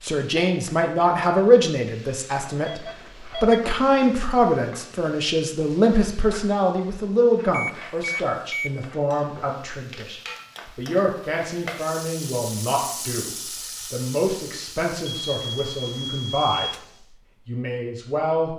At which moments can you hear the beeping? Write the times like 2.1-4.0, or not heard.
2.6-3.6, 7.5-8.8, 15.1-16.9.